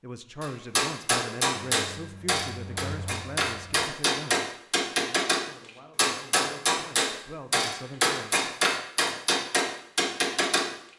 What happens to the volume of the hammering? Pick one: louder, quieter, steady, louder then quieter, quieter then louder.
steady.